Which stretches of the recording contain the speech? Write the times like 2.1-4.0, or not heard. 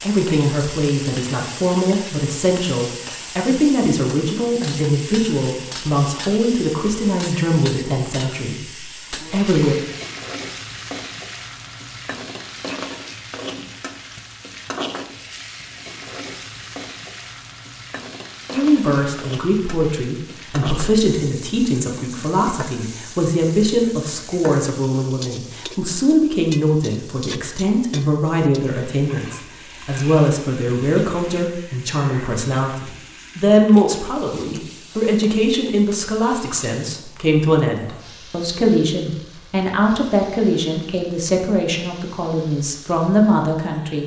0.0-9.8, 18.5-44.0.